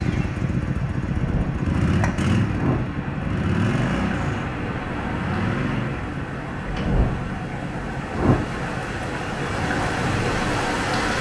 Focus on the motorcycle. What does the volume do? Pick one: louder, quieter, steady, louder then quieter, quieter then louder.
quieter.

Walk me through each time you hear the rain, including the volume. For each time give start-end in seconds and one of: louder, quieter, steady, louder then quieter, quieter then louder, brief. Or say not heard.
0.0-11.1 louder.